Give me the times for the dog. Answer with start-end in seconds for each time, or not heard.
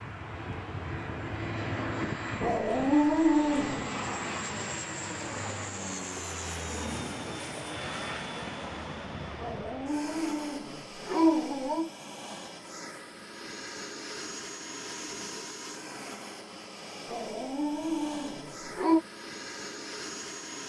2.4-3.9, 9.4-11.9, 17.1-19.0.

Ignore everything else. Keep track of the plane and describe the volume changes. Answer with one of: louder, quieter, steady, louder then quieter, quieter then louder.
quieter.